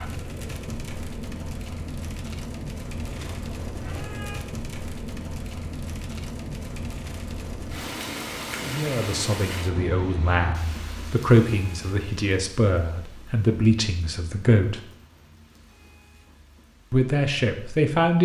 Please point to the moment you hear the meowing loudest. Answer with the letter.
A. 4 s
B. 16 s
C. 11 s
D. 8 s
A.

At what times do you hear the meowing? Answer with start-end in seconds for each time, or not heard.
3.0-4.4.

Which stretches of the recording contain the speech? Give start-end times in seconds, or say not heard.
8.6-14.8, 16.9-18.2.